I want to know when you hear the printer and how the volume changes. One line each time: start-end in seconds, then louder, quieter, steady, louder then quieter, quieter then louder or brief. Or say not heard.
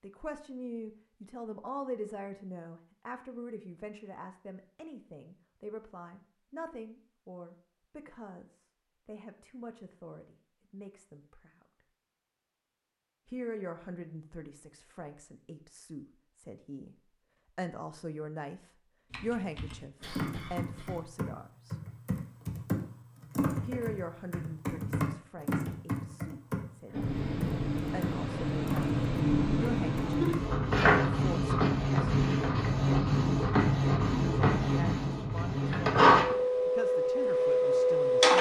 26.9-38.3 louder.